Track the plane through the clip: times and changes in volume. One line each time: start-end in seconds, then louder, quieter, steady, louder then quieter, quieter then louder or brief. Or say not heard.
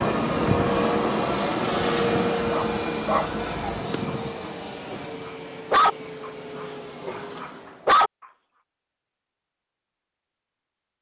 0.0-8.0 quieter.